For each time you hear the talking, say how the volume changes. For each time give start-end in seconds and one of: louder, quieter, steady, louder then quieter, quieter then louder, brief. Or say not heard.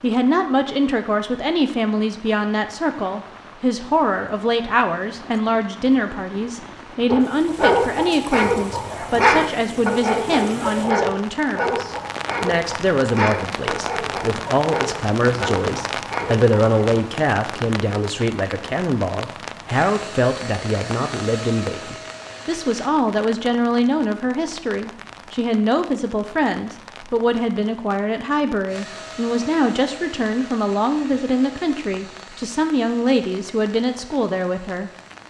0.0-34.9 steady.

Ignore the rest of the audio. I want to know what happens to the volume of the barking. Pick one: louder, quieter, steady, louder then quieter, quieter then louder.
quieter.